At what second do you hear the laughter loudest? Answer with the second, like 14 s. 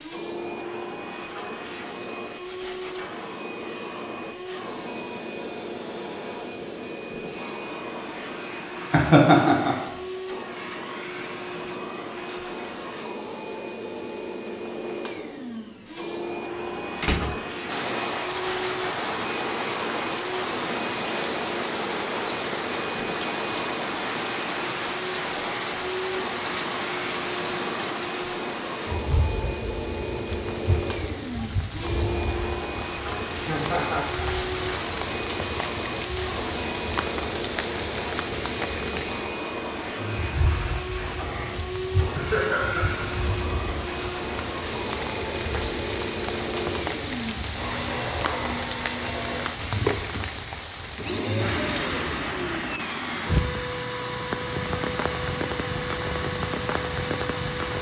9 s.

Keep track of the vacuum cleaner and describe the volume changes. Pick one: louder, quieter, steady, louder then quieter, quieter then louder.
steady.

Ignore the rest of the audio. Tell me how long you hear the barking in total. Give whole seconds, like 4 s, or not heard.
not heard.